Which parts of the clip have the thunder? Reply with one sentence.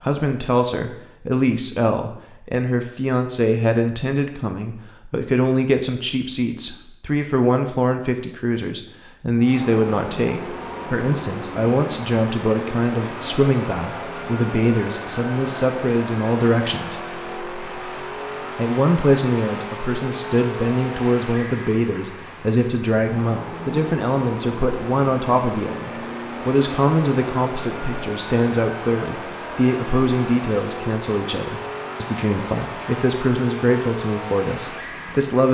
You can't hear the thunder here.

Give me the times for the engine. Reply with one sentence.
The engine can be heard from 9.3 to 35.4 s.